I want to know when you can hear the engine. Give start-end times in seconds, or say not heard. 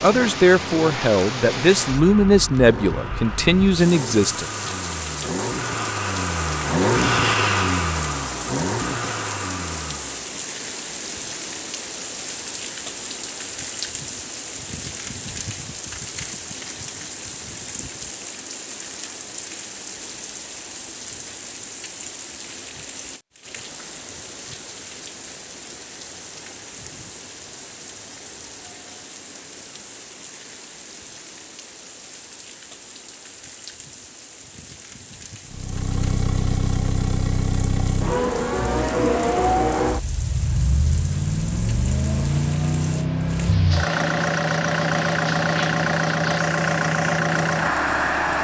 0.0-10.3, 35.5-48.4.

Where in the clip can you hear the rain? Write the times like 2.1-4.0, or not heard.
0.0-48.4.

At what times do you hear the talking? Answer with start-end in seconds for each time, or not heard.
0.0-4.5.